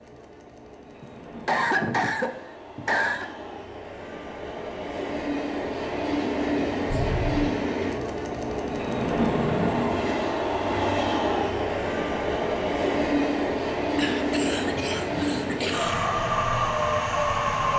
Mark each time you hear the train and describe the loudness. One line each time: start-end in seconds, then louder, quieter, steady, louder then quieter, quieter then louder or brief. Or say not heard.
0.0-17.7 louder.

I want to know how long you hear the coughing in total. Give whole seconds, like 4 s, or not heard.
5 s.